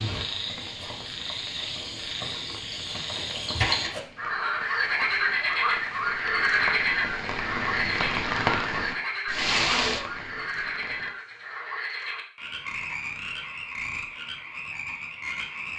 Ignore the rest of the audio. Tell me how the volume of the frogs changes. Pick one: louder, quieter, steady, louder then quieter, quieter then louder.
louder then quieter.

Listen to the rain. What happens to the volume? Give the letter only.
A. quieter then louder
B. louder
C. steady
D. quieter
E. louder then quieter
B.